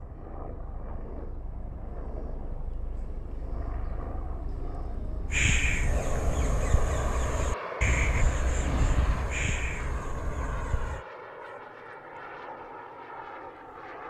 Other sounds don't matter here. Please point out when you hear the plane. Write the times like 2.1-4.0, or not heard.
0.0-14.0.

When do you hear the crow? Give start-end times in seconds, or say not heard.
5.3-11.1.